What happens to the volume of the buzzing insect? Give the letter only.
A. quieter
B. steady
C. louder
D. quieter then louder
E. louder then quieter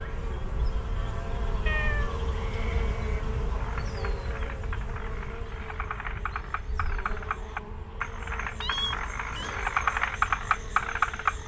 A.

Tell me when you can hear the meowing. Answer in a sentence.
The meowing can be heard from 1.6 to 2.2 s and from 8.4 to 9.6 s.